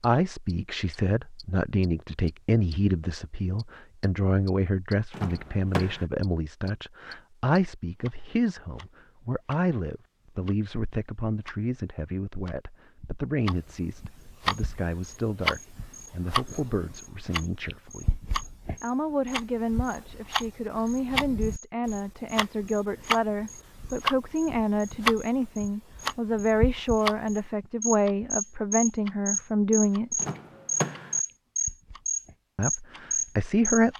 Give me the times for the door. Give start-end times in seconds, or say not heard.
5.1-6.0, 30.1-31.2.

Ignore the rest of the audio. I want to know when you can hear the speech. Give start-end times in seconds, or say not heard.
0.0-30.2, 32.5-33.9.